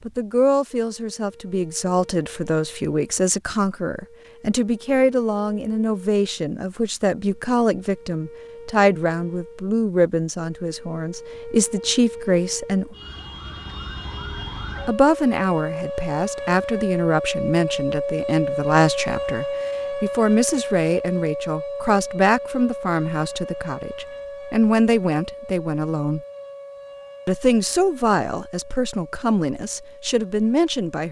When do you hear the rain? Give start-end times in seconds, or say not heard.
not heard.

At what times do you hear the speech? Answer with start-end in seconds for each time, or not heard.
0.1-12.9, 14.8-26.2, 27.2-31.0.